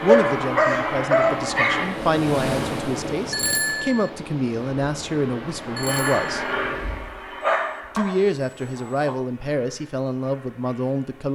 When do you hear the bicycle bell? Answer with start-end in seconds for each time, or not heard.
3.3-4.1, 5.8-6.3.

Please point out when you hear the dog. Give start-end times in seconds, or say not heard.
0.1-1.9, 7.4-9.2.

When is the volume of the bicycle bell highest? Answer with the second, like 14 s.
4 s.